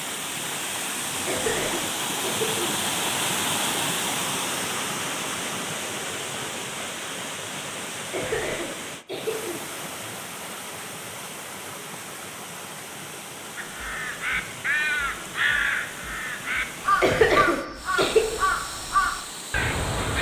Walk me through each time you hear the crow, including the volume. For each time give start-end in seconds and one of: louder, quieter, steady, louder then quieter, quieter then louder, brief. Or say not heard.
13.6-20.1 steady.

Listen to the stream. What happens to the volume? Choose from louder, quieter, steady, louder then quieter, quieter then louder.
quieter.